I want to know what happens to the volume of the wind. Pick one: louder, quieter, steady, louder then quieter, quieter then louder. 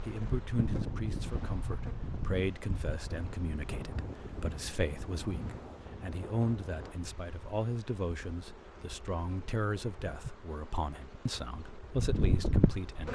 steady.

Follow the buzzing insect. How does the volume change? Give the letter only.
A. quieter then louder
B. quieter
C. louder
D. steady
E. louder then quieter
A.